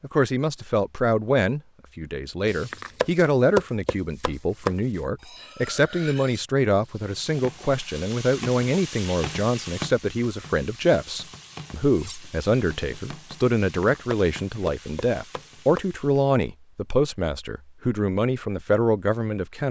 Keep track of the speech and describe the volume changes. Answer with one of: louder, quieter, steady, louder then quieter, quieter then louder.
steady.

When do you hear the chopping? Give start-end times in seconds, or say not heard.
2.5-4.8, 13.8-15.8.